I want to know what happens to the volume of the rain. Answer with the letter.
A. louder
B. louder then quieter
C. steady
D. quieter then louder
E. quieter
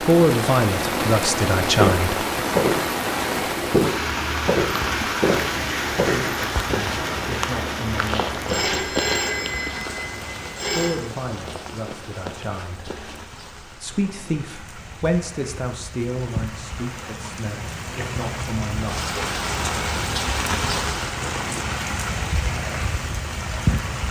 D.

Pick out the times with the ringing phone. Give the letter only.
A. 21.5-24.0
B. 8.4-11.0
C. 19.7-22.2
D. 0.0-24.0
B.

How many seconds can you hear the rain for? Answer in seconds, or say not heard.
24 s.